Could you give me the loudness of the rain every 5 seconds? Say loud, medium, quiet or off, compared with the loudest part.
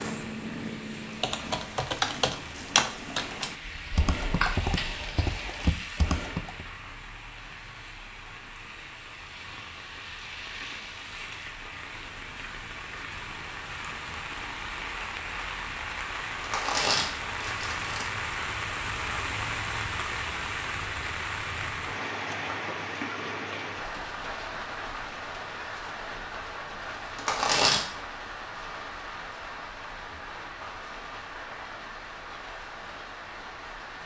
medium, medium, medium, loud, loud, medium, medium.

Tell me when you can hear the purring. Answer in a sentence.
The purring can be heard from 0.0 to 1.8 s.